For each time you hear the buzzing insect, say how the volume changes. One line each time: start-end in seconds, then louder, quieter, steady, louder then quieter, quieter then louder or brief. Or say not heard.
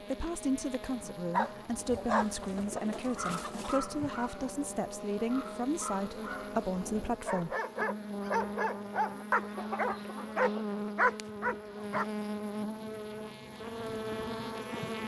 0.0-15.0 louder.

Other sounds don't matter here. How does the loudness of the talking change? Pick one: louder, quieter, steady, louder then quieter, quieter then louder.
steady.